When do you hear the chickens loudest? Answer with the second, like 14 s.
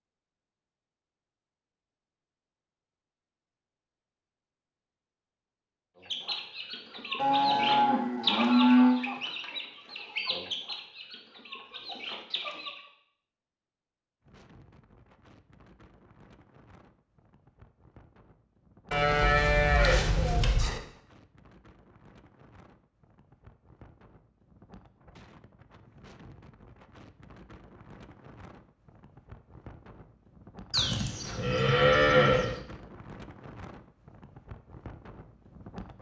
8 s.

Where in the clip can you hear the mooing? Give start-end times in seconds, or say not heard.
7.2-9.0, 18.9-20.8, 30.7-32.5.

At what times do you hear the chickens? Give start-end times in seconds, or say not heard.
6.0-12.8.